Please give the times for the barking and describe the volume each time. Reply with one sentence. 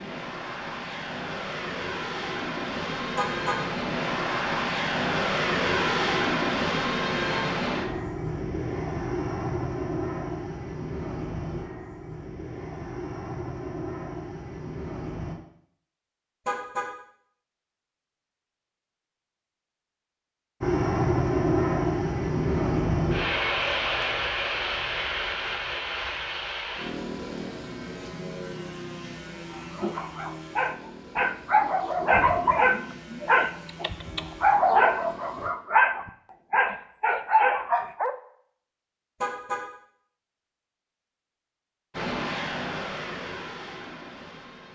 You can hear the barking from 29.8 to 38.1 s, at a steady volume.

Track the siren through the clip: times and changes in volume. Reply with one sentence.
The siren can't be heard in this clip.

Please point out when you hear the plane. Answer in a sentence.
The plane can be heard from 0.0 to 15.3 s, from 20.6 to 35.5 s and from 41.9 to 44.7 s.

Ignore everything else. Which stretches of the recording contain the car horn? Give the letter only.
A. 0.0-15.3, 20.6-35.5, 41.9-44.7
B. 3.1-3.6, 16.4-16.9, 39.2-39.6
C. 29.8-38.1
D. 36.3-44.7
B.